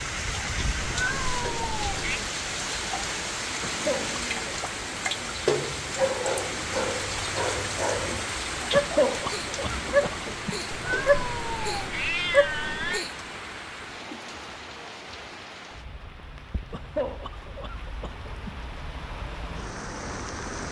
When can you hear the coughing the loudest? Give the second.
9 s.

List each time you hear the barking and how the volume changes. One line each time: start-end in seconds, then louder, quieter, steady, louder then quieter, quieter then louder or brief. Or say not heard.
5.8-13.1 louder.